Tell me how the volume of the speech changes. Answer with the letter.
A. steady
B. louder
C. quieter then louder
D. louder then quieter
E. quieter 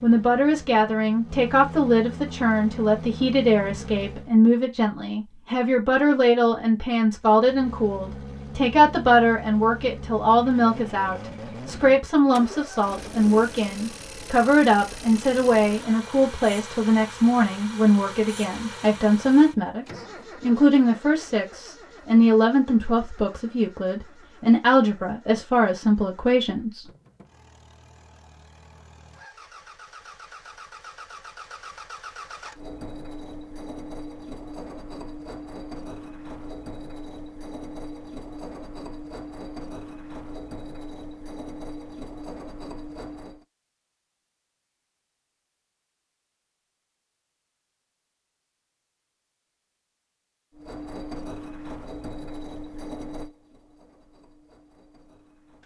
A.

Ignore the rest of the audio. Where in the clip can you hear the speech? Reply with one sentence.
The speech can be heard from 0.0 to 26.9 s.